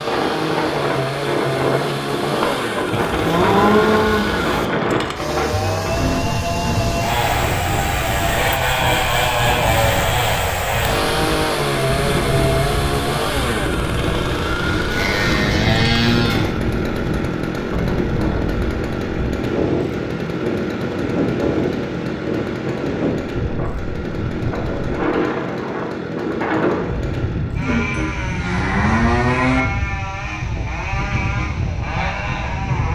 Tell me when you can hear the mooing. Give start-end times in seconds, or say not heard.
2.9-4.5, 14.9-16.6, 27.6-29.6.